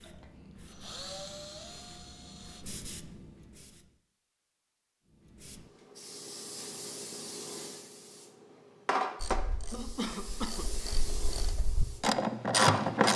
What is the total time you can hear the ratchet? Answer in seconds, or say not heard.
4 s.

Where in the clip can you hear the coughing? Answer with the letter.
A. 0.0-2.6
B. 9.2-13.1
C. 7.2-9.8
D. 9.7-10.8
D.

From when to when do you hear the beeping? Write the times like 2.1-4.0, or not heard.
not heard.